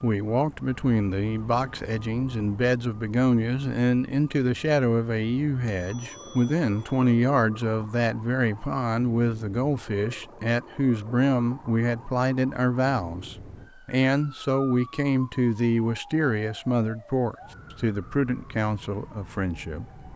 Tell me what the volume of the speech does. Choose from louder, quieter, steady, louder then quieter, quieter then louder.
steady.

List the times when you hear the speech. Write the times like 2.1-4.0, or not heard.
0.0-19.9.